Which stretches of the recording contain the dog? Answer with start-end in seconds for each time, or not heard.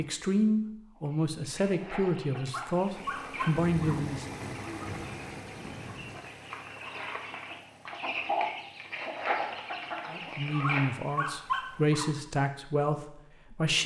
2.5-4.0, 10.6-12.1.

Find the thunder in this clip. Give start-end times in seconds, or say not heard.
3.6-6.2.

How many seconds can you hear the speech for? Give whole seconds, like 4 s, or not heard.
8 s.